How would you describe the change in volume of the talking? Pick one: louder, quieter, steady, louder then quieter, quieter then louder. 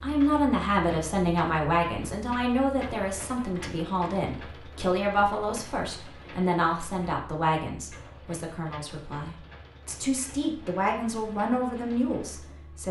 quieter then louder.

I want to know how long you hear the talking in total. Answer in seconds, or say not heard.
13 s.